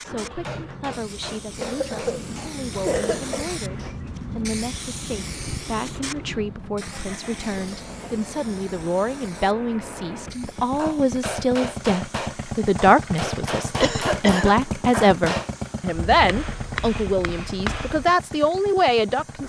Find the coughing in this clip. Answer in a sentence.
The coughing can be heard from 1.6 to 3.5 s and from 13.8 to 14.6 s.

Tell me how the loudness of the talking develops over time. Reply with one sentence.
The volume of the talking goes up.